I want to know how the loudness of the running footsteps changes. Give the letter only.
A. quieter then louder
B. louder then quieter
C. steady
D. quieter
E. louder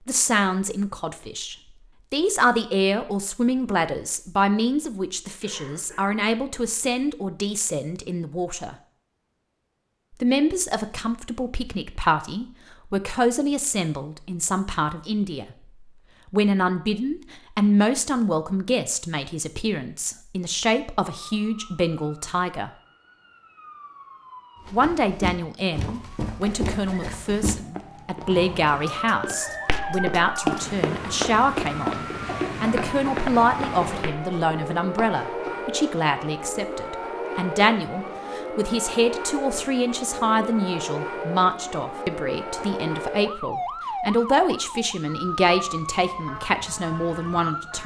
B.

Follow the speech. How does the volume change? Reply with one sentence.
The volume of the speech stays about the same.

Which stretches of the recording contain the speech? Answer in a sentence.
The speech can be heard from 0.1 to 8.8 s, from 10.2 to 15.4 s, from 16.3 to 22.7 s and from 24.7 to 47.8 s.